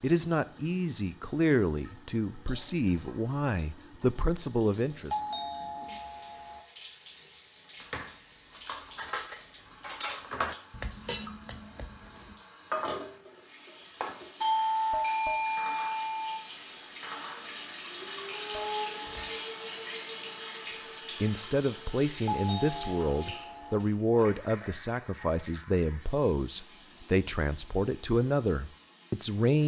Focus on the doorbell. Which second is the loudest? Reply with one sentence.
The loudest moment of the doorbell is at 15 seconds.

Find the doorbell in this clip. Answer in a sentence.
The doorbell can be heard from 5.1 to 6.7 s, from 14.4 to 16.4 s and from 22.2 to 23.8 s.